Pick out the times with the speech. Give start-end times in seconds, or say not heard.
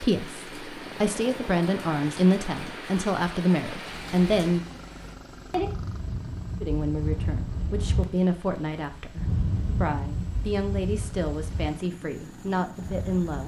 0.0-4.7, 6.6-13.4.